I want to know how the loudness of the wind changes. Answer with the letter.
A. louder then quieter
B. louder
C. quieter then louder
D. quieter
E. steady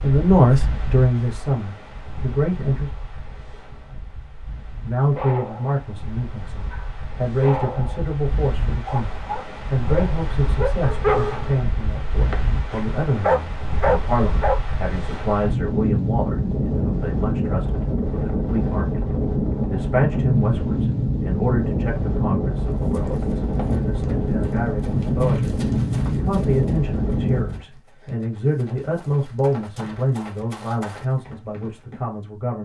B.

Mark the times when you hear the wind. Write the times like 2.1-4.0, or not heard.
0.0-27.6.